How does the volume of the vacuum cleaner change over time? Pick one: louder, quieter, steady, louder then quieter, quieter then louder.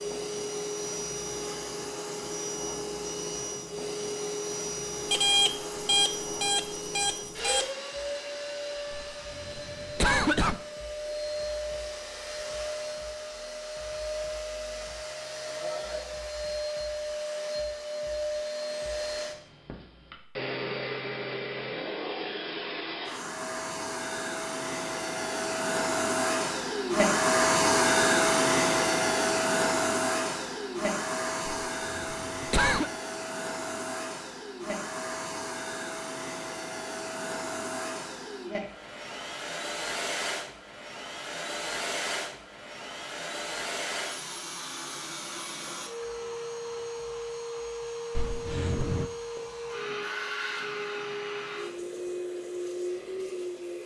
louder then quieter.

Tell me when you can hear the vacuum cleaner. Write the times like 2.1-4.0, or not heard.
0.0-53.8.